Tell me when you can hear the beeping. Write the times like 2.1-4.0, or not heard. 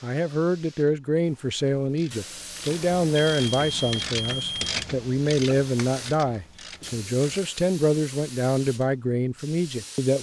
2.6-4.8.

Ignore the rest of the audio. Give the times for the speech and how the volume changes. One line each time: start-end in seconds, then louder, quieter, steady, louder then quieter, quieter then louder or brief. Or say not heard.
0.0-10.1 steady.